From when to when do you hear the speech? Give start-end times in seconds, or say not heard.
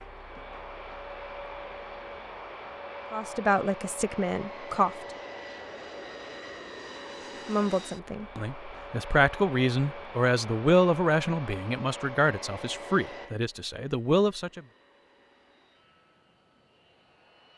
3.1-4.9, 7.5-14.6.